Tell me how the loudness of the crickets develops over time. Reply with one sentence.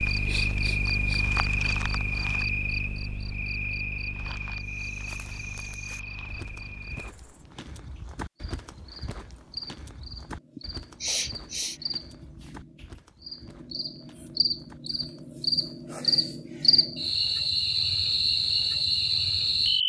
The volume of the crickets goes down, then up.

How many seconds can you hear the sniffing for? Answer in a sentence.
You can hear the sniffing for 2 seconds altogether.